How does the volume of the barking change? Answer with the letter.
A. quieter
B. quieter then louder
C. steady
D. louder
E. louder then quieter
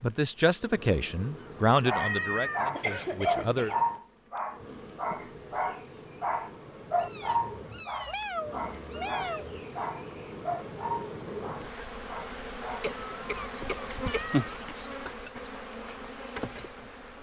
A.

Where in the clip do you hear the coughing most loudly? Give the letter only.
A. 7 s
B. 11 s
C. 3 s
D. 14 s
C.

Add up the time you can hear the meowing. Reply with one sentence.
You can hear the meowing for 6 seconds altogether.